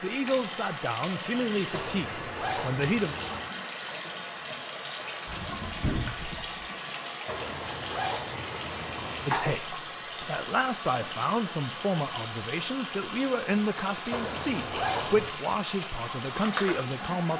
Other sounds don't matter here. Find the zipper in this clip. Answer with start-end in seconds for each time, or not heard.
1.7-3.5, 7.2-9.3, 14.1-15.3.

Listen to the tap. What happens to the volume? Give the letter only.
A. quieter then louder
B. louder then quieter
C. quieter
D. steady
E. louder
D.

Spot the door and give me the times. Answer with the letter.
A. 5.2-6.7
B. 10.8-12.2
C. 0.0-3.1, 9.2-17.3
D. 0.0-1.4
A.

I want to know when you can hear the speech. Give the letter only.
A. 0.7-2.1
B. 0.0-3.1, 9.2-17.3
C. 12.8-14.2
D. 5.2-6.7
B.